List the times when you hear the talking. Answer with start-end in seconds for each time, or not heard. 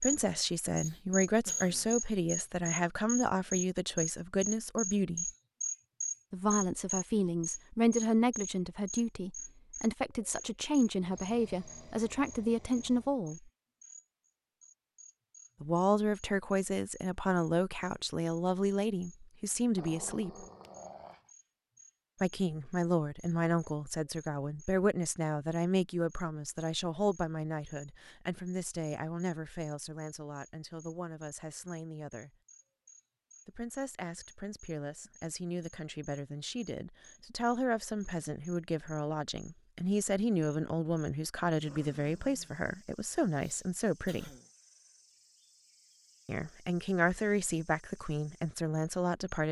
0.0-5.3, 6.3-13.4, 15.6-20.4, 22.2-32.3, 33.5-44.3, 46.2-49.4.